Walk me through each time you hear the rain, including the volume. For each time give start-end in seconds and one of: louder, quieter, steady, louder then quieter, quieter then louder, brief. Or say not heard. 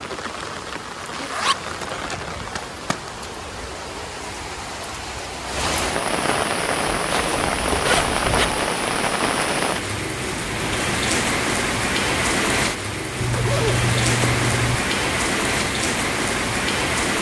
0.0-17.1 louder.